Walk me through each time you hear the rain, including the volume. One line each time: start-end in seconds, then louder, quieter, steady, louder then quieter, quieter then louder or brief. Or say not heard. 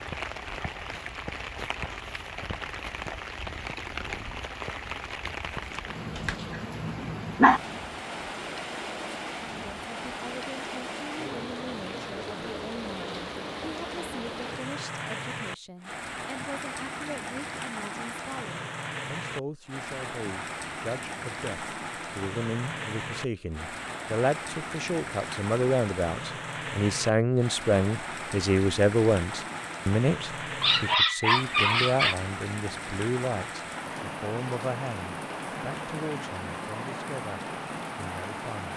0.0-38.7 steady.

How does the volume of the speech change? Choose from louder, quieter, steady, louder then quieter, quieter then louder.
louder then quieter.